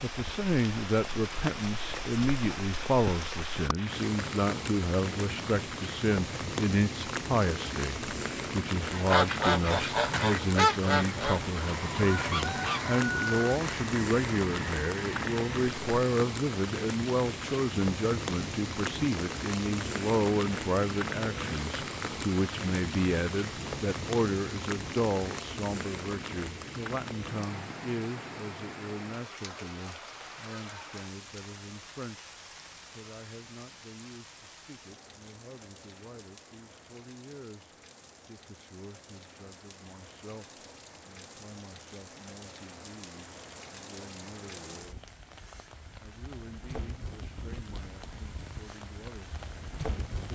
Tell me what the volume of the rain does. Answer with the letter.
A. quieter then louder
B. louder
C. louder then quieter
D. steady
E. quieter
E.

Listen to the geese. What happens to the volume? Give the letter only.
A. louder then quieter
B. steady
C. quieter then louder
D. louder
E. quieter
E.